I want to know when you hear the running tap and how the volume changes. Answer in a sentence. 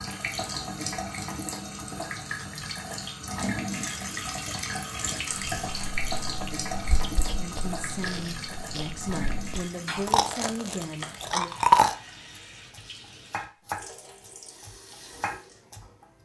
You can hear the running tap from 0.0 to 16.2 s, getting quieter.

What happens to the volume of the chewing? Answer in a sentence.
The volume of the chewing goes up.